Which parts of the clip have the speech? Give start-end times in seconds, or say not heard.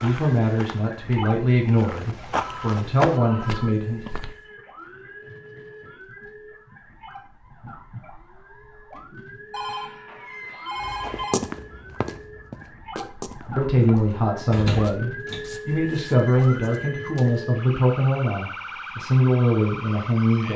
0.0-4.0, 13.6-20.5.